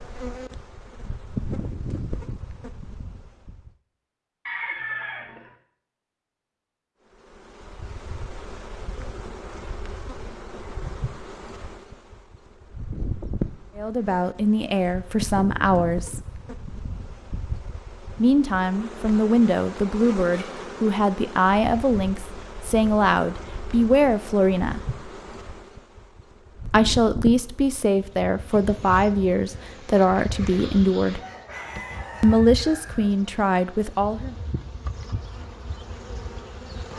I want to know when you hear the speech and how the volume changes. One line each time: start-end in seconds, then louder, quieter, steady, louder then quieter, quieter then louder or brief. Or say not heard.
13.8-16.2 brief
18.1-24.8 steady
26.6-31.2 steady
32.2-34.4 brief.